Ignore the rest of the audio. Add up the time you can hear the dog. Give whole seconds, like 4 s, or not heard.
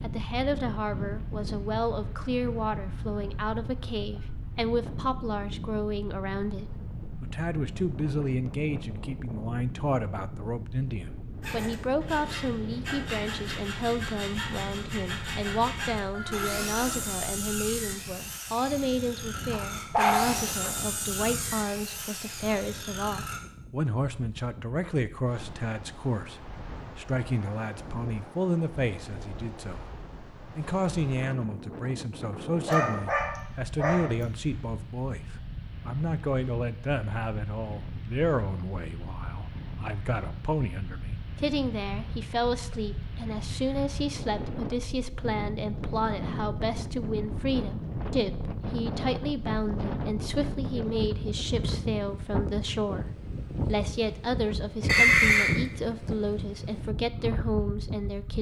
3 s.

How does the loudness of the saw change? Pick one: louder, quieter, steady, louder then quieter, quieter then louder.
steady.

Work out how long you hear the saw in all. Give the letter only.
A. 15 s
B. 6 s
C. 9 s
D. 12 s
D.